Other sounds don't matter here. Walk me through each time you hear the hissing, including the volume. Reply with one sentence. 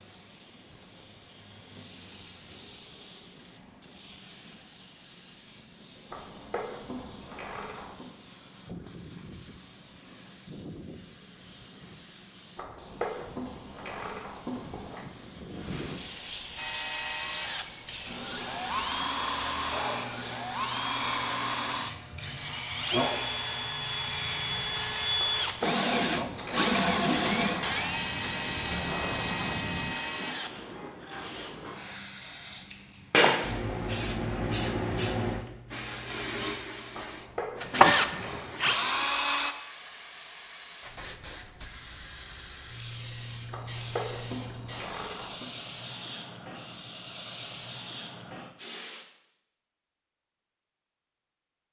You can hear the hissing from 0.0 to 49.1 s, getting louder then quieter.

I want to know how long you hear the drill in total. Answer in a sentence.
The drill can be heard for 16 seconds in total.